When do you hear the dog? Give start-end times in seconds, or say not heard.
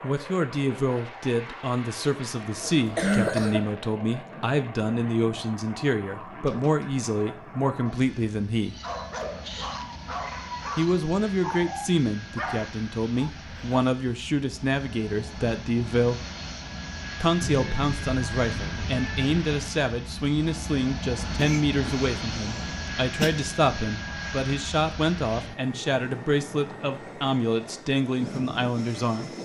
8.7-13.8.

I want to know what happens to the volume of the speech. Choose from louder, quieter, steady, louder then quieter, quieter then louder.
steady.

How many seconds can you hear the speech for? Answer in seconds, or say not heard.
26 s.